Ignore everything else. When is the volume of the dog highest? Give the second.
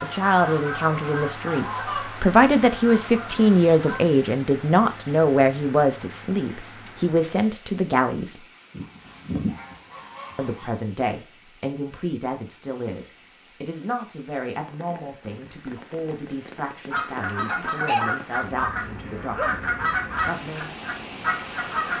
18 s.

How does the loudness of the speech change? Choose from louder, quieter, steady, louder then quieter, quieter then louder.
quieter.